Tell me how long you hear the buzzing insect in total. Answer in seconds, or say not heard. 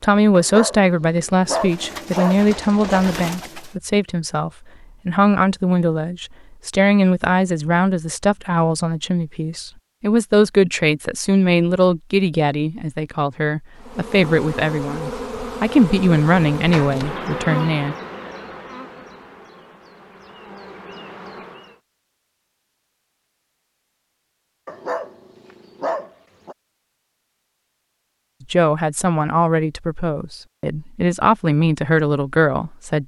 8 s.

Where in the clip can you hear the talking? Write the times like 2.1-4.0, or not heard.
0.0-17.9, 28.5-33.0.